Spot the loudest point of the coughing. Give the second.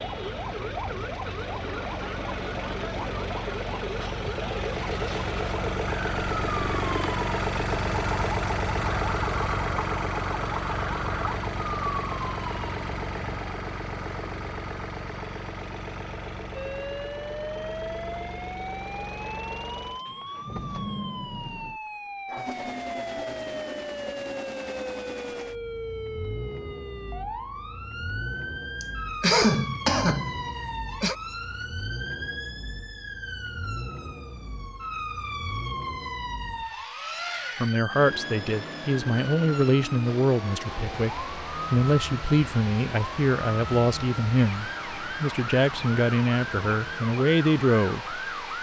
29 s.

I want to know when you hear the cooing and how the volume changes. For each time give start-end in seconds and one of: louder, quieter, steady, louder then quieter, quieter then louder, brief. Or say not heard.
not heard.